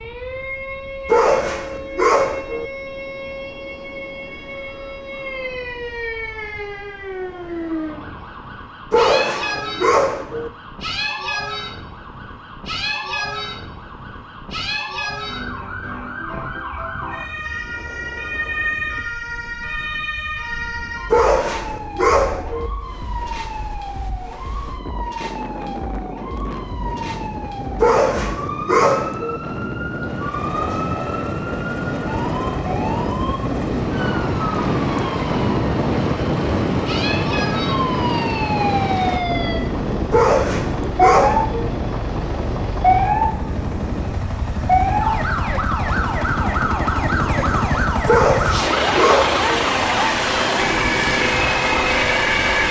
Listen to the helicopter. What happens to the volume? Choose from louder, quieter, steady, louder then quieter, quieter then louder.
louder.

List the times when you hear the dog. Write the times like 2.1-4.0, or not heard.
1.1-2.7, 8.9-10.5, 21.1-22.7, 27.8-29.4, 40.1-41.6, 48.0-49.5.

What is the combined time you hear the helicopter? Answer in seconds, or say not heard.
23 s.